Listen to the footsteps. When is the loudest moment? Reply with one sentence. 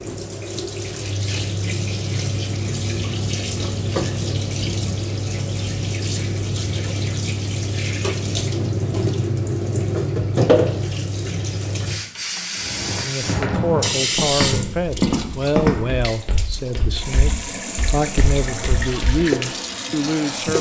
The volume of the footsteps peaks at 16 seconds.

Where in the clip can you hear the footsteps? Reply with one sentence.
The footsteps can be heard from 12.6 to 19.2 s.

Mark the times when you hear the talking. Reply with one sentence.
You can hear the talking from 13.0 to 20.5 s.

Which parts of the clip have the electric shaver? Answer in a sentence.
The electric shaver can't be heard in this clip.